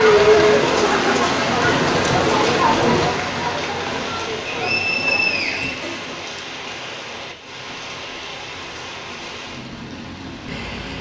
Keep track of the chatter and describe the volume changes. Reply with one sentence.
The loudness of the chatter goes down.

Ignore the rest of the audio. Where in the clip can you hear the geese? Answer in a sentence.
You can't hear the geese here.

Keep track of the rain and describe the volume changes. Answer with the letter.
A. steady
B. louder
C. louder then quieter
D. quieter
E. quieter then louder
D.